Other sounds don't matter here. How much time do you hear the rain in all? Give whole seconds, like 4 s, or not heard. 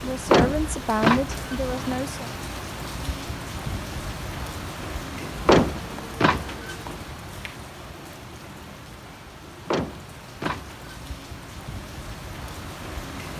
13 s.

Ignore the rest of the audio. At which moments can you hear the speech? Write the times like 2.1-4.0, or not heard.
0.0-2.4.